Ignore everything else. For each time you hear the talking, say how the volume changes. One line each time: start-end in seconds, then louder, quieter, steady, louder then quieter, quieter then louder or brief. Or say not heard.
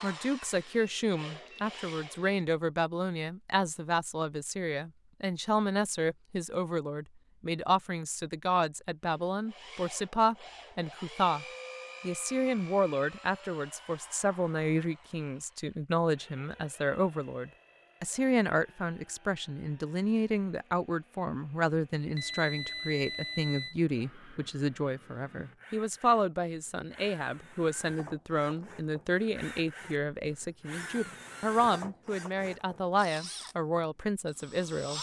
0.0-34.9 steady.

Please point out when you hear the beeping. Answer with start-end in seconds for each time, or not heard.
0.5-2.5, 22.1-23.8.